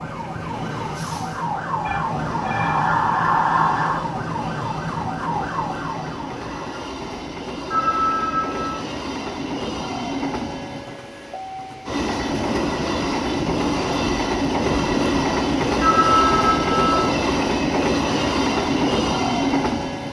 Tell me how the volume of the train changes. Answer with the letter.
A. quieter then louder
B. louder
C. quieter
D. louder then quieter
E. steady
B.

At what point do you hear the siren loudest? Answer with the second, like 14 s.
3 s.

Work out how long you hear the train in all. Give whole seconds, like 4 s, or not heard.
20 s.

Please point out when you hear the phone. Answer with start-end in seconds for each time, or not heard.
1.9-2.9, 7.7-8.8, 15.8-17.1.